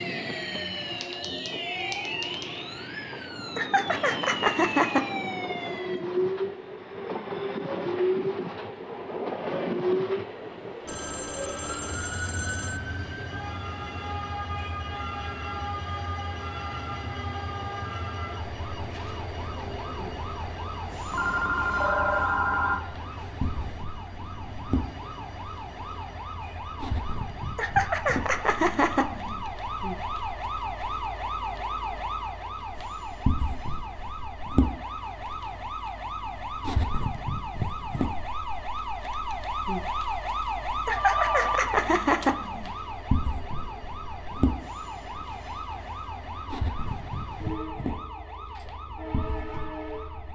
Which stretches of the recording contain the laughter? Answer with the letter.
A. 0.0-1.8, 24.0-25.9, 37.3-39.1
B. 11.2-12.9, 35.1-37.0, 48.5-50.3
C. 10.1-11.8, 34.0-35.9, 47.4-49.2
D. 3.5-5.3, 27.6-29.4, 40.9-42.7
D.